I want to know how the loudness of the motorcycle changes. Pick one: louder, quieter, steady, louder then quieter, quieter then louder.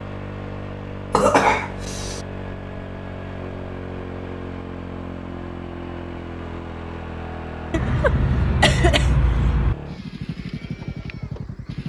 steady.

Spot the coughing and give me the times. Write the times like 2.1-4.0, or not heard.
1.1-2.2, 7.7-9.8.